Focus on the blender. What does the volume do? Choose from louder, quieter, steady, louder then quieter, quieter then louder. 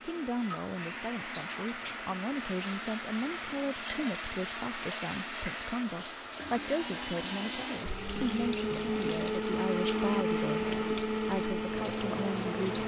louder.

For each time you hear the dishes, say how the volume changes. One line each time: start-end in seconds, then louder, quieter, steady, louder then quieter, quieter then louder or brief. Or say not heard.
not heard.